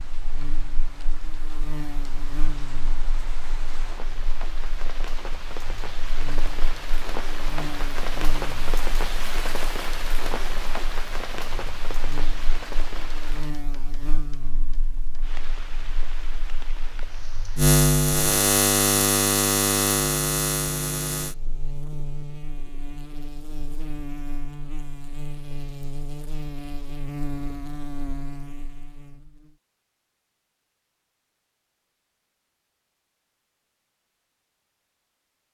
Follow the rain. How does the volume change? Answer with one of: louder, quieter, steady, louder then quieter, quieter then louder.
louder then quieter.